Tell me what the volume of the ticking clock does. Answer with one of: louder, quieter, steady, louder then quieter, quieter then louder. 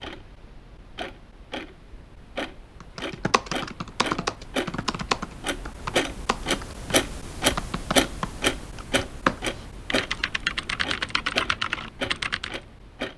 louder then quieter.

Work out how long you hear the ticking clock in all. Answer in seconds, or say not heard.
13 s.